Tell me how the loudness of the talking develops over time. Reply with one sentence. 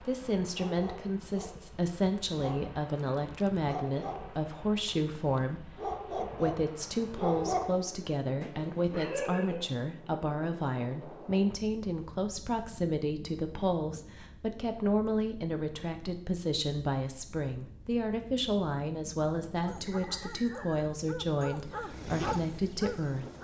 The loudness of the talking stays about the same.